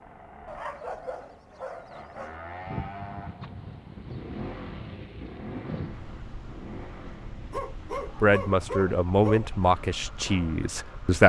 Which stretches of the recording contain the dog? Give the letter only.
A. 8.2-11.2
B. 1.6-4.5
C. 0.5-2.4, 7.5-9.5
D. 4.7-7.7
C.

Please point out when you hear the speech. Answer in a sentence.
You can hear the speech from 8.2 to 11.2 s.